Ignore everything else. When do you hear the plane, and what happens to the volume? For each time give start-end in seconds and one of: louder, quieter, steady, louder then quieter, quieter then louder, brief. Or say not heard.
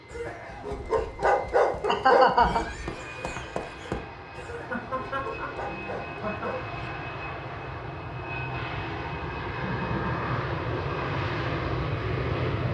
0.0-12.6 louder.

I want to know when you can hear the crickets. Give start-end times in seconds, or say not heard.
not heard.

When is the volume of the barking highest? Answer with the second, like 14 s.
2 s.